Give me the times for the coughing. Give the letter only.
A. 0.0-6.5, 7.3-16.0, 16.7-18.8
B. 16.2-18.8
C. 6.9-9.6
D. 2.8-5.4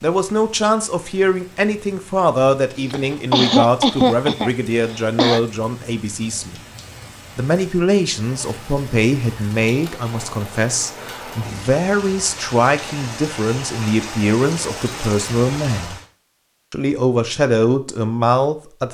D.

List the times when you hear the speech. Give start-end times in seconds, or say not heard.
0.0-6.5, 7.3-16.0, 16.7-18.8.